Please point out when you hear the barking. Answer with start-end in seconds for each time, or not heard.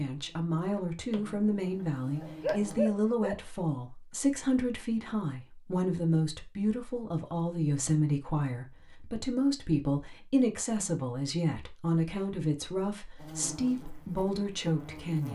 2.2-3.4.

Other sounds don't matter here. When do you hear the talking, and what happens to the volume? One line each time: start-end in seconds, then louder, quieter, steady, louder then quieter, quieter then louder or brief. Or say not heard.
0.0-15.3 steady.